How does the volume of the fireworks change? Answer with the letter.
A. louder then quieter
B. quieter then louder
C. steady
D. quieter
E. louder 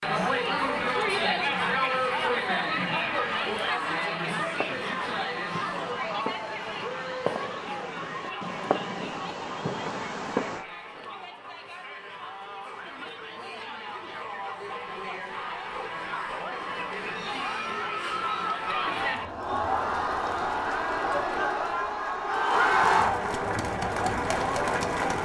E.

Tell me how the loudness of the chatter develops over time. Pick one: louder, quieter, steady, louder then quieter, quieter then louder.
quieter then louder.